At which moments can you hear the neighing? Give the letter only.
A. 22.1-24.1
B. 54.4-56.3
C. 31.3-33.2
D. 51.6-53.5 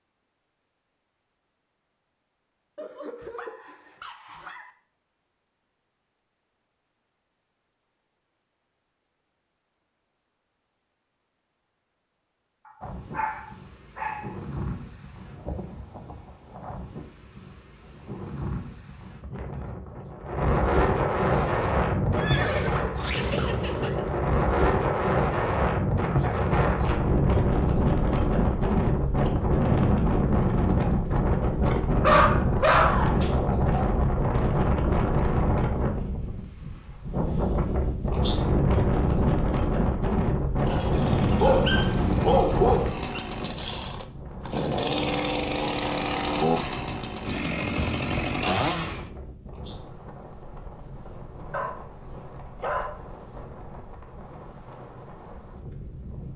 A.